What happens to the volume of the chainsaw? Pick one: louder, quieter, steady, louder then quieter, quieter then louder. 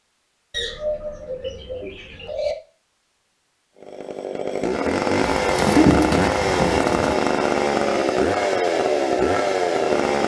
steady.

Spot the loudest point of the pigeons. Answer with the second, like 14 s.
6 s.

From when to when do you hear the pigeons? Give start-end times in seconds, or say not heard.
0.5-2.5, 5.2-7.2.